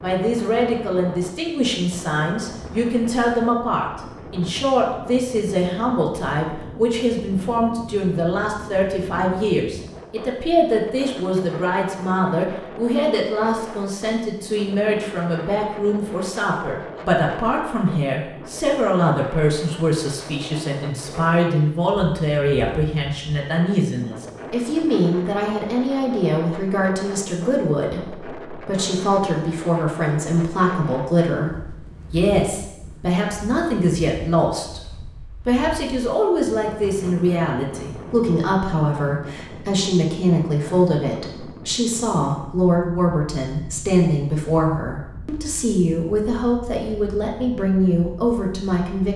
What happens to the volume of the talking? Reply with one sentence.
The loudness of the talking stays about the same.